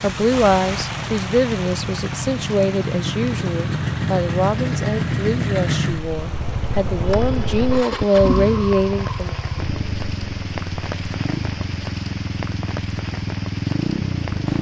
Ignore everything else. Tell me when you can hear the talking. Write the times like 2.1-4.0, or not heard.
0.0-9.3.